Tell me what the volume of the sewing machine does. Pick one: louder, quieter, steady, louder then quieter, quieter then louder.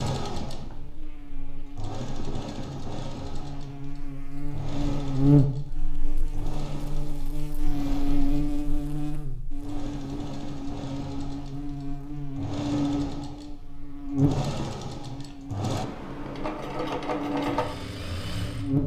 louder.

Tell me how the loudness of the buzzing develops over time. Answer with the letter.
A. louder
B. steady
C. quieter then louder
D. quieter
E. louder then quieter
E.